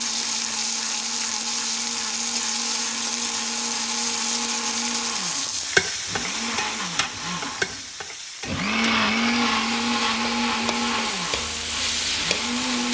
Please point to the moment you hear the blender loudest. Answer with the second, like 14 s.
9 s.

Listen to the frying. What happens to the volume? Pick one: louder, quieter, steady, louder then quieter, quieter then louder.
quieter then louder.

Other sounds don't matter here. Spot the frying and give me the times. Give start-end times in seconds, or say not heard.
0.0-12.9.